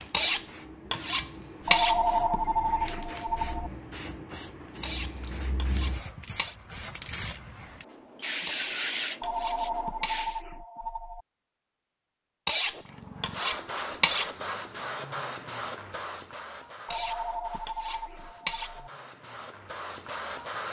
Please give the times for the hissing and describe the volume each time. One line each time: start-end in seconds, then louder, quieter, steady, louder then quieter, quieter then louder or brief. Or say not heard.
0.0-10.4 louder
12.8-20.6 quieter then louder.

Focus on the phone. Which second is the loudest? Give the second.
2 s.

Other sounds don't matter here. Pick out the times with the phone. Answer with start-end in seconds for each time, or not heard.
1.6-3.7, 9.2-11.2, 16.9-18.9.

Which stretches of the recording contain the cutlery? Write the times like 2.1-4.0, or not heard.
0.1-2.0, 4.8-6.5, 8.4-10.2, 12.4-14.3, 16.9-18.8.